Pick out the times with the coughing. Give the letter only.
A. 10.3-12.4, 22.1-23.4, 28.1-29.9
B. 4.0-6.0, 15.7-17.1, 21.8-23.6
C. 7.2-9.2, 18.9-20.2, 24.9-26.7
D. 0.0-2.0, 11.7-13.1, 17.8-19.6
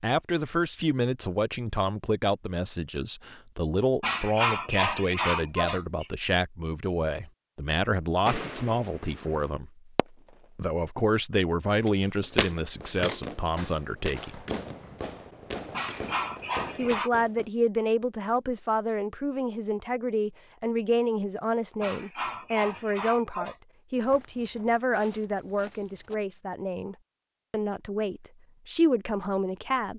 B.